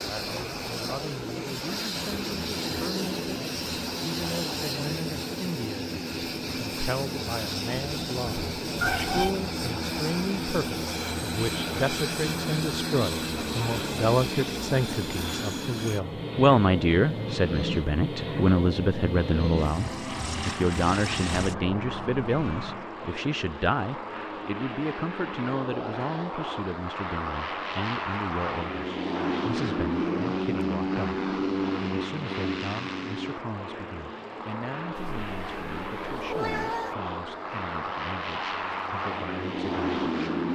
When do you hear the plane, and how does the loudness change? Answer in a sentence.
You can hear the plane from 0.0 to 40.4 s, at a steady volume.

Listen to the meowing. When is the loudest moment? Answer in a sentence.
The loudest moment of the meowing is at 9 seconds.